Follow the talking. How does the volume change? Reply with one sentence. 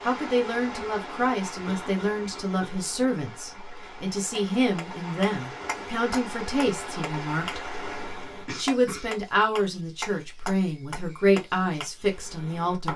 The volume of the talking stays about the same.